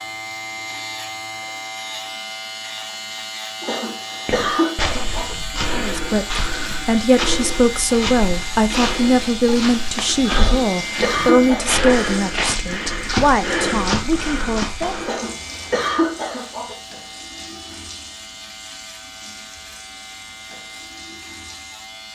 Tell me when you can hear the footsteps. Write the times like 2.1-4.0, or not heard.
4.2-15.2.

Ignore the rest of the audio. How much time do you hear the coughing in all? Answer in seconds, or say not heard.
5 s.